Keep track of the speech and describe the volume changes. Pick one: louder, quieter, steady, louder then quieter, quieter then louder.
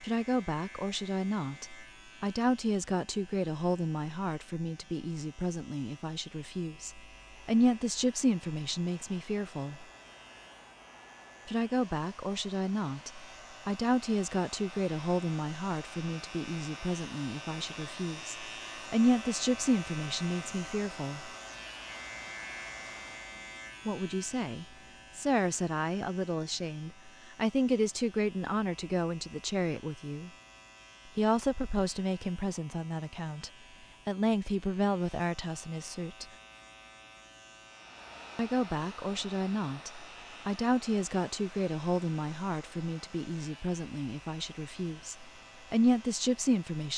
steady.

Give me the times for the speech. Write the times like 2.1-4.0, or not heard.
0.0-9.8, 11.4-21.3, 23.9-30.3, 31.1-36.2, 38.4-46.9.